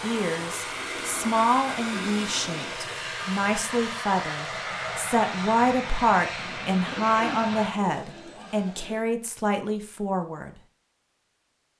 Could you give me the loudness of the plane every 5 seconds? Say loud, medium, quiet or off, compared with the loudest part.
loud, loud, off.